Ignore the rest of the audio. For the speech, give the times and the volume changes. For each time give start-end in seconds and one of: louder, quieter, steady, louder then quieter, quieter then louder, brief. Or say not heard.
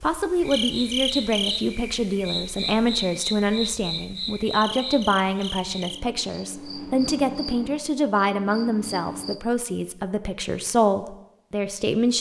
0.0-12.1 steady.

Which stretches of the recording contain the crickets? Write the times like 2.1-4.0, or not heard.
0.0-9.4.